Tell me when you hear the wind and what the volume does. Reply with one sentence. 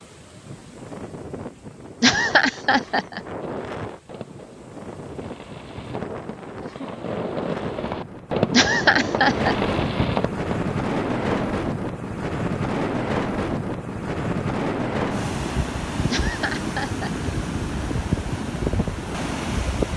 The wind can be heard from 0.0 to 19.9 s, getting louder.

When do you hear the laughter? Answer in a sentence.
The laughter can be heard from 2.0 to 3.2 s, from 8.5 to 9.6 s and from 16.1 to 17.3 s.